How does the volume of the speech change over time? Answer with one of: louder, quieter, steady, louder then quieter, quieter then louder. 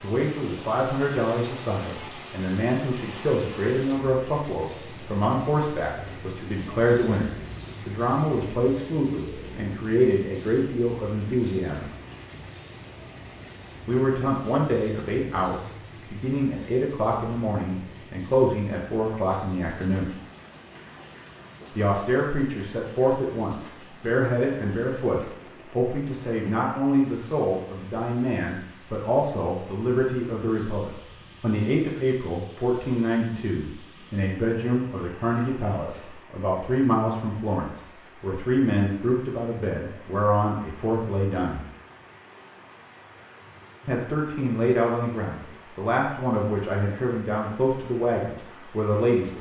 steady.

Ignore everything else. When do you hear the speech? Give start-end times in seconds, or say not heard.
0.0-11.9, 13.8-20.1, 21.7-41.6, 43.9-49.3.